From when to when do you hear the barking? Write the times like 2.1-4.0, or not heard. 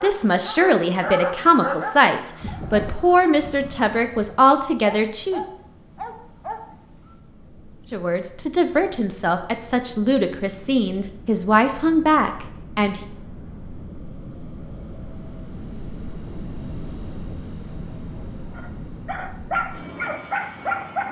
0.0-7.2, 18.6-21.0.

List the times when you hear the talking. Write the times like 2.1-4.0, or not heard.
0.0-5.4, 7.9-13.0.